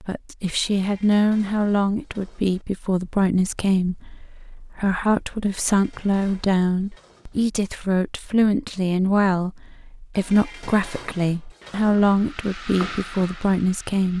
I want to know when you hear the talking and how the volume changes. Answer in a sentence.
The talking can be heard from 0.0 to 14.1 s, at a steady volume.